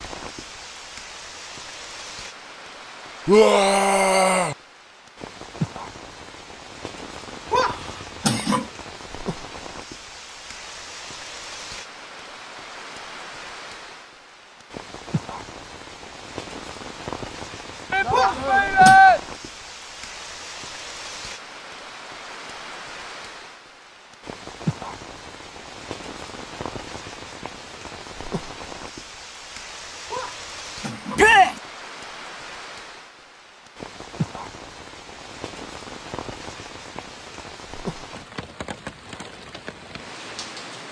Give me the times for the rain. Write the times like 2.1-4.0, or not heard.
0.0-40.8.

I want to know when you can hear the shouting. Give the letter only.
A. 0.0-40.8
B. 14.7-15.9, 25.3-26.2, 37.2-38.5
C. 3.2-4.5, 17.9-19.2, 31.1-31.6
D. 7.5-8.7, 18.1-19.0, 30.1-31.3
C.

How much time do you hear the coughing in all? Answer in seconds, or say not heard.
3 s.